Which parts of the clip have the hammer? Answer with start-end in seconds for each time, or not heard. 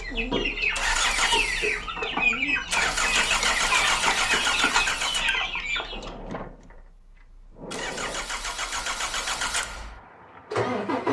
not heard.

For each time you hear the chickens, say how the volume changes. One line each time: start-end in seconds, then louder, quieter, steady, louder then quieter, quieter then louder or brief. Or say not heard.
0.0-6.1 steady.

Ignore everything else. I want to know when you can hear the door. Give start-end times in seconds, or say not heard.
5.9-8.3.